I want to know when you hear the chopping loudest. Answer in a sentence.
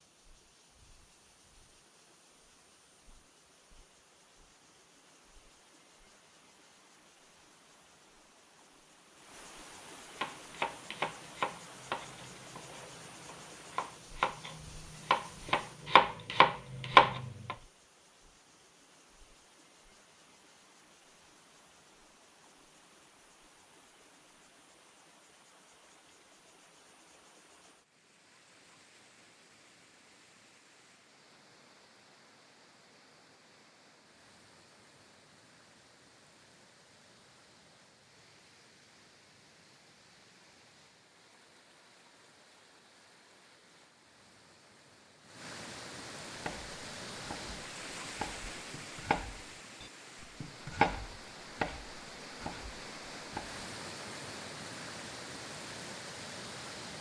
The volume of the chopping peaks at 17 seconds.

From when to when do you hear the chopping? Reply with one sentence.
The chopping can be heard from 10.2 to 17.6 s and from 46.4 to 53.6 s.